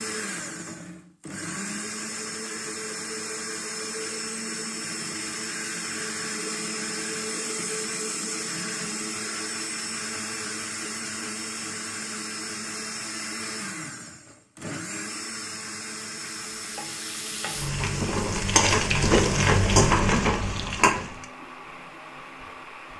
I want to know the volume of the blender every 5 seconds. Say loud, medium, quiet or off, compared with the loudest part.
loud, loud, loud, medium, medium.